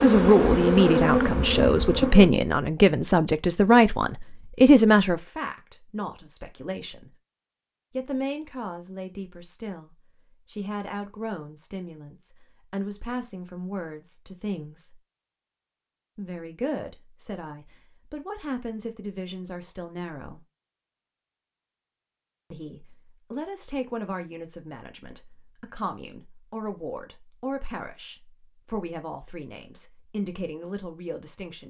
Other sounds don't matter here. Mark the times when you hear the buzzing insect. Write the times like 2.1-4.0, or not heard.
0.0-2.3.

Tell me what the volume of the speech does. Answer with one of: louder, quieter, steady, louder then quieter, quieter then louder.
quieter.